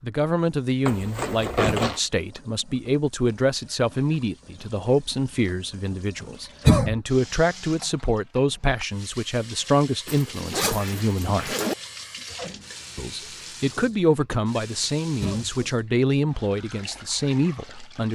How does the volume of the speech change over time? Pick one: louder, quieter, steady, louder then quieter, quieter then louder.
steady.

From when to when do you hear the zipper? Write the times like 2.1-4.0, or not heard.
0.8-2.0, 10.1-11.8.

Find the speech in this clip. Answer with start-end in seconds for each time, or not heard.
0.0-11.6, 12.9-18.0.